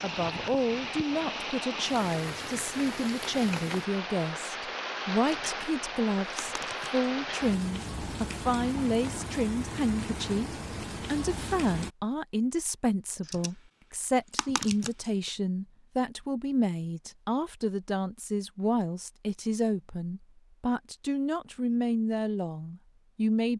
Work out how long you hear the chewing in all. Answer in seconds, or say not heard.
not heard.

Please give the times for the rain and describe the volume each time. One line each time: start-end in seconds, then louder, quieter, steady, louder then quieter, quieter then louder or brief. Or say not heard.
0.0-11.9 steady.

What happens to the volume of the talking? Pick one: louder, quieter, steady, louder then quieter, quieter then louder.
steady.